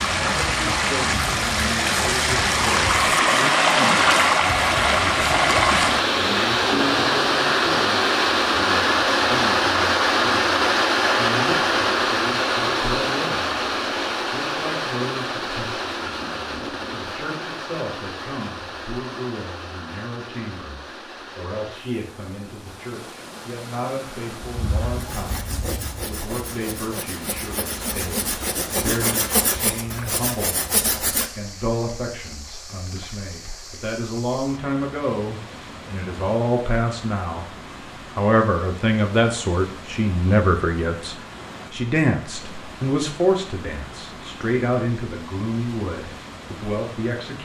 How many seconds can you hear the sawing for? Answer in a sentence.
You can hear the sawing for 7 seconds altogether.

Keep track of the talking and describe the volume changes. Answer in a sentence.
The loudness of the talking goes up.